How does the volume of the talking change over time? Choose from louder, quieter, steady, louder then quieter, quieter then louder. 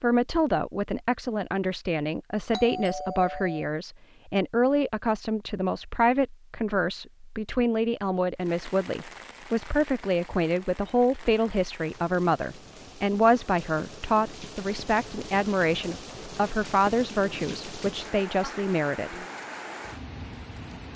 steady.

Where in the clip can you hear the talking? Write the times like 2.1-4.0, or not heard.
0.0-19.2.